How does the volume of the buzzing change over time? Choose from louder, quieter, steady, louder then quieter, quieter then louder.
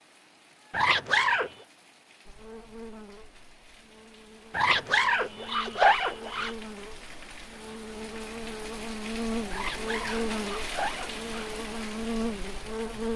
louder.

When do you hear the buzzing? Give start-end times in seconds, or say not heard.
2.2-13.1.